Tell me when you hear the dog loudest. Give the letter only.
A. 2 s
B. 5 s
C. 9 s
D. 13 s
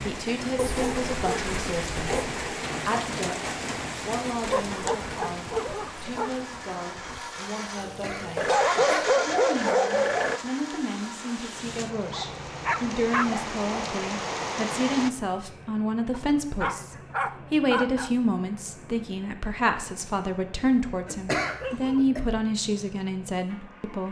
C.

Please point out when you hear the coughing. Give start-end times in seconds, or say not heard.
7.8-9.4, 21.1-22.2.